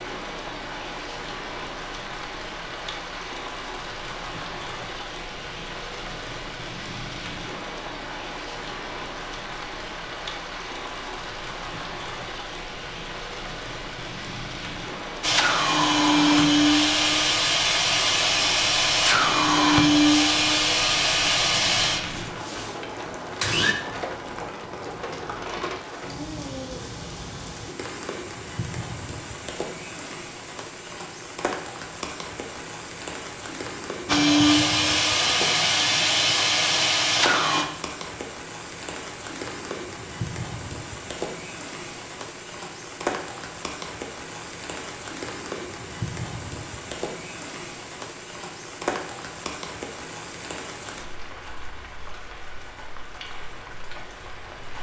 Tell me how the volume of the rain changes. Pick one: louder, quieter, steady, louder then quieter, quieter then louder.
steady.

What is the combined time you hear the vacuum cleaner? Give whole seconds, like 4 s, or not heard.
12 s.